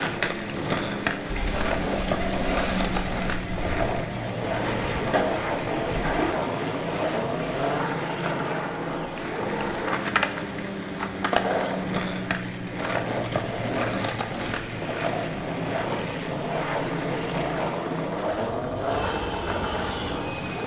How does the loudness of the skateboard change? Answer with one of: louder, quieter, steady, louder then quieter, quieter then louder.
steady.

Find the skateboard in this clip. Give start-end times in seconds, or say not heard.
0.0-20.6.